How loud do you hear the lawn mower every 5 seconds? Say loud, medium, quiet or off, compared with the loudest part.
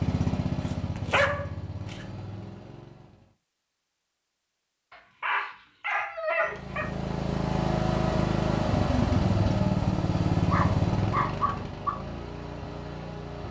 medium, loud, loud.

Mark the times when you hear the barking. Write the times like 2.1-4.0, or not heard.
1.1-1.9, 4.9-6.9, 10.3-11.9.